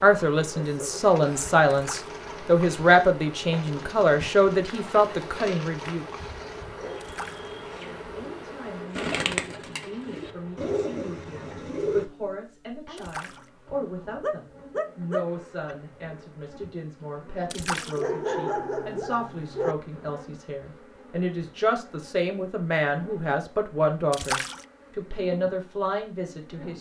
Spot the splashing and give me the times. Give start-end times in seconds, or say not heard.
1.7-2.2, 7.0-7.5, 12.9-13.5, 17.5-18.1, 24.1-24.6.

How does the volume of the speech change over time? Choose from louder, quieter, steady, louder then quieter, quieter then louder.
quieter then louder.